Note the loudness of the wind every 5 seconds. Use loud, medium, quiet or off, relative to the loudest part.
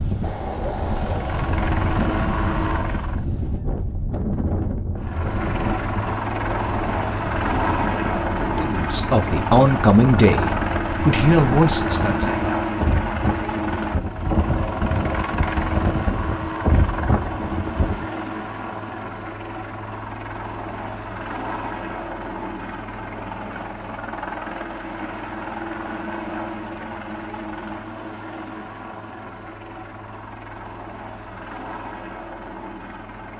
loud, medium, loud, loud, off, off, off.